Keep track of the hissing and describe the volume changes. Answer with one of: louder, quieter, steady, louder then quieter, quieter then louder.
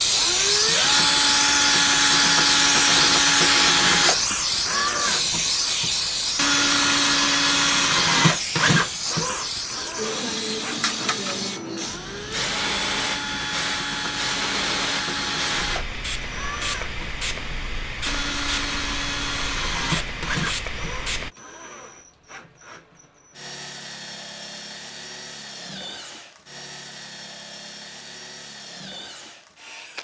quieter.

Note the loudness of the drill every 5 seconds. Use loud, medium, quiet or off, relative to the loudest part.
loud, loud, medium, medium, quiet, quiet.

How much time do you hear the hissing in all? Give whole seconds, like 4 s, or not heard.
21 s.